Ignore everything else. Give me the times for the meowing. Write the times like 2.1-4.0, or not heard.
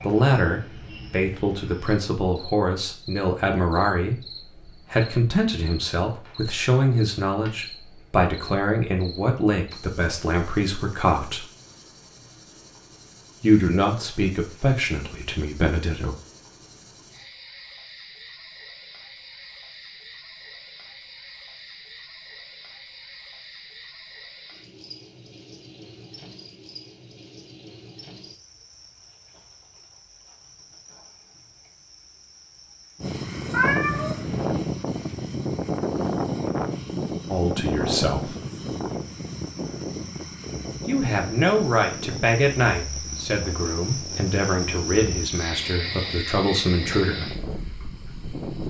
33.5-34.4.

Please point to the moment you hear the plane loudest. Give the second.
36 s.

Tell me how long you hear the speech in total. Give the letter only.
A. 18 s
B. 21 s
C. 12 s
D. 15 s
B.